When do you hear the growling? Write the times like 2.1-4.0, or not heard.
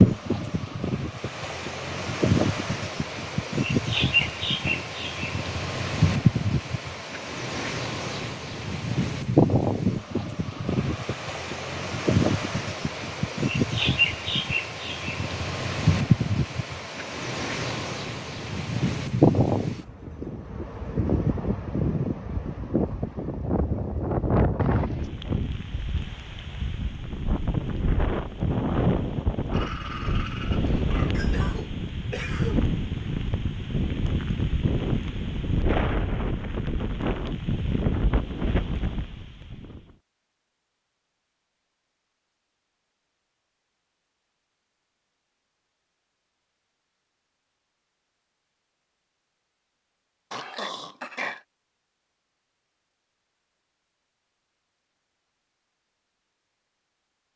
4.2-4.8, 29.5-31.1, 50.3-51.4.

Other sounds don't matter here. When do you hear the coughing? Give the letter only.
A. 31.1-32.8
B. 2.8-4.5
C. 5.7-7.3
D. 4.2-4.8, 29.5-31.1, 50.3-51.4
A.